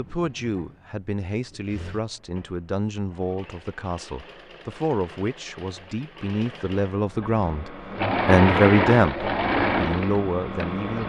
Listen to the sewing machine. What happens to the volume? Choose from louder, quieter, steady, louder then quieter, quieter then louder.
louder.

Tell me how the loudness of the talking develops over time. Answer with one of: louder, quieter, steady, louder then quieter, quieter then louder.
louder.